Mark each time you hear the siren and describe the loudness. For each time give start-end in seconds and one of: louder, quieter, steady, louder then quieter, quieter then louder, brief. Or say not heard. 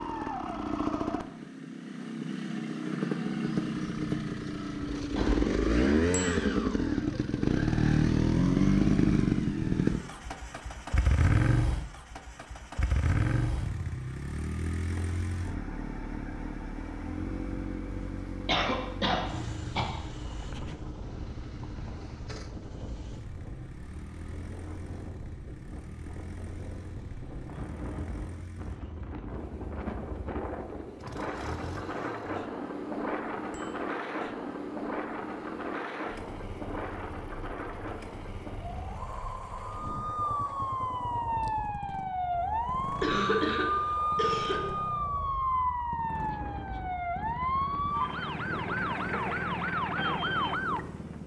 39.9-51.2 steady.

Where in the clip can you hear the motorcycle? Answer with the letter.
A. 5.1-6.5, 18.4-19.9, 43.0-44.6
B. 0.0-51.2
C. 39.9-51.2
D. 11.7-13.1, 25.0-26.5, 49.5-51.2
B.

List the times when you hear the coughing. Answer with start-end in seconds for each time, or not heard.
5.1-6.5, 18.4-19.9, 43.0-44.6.